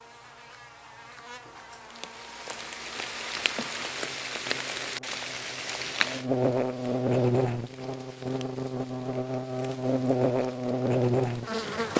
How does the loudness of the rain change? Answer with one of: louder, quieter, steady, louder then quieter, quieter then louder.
quieter.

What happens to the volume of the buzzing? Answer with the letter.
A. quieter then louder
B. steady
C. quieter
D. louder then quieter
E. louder
E.